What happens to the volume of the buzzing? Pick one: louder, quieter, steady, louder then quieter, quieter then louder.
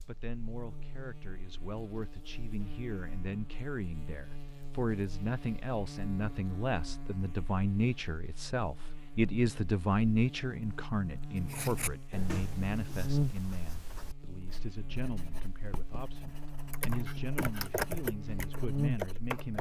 louder.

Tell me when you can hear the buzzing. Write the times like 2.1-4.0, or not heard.
0.0-19.5.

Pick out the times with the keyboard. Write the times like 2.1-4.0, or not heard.
16.7-19.5.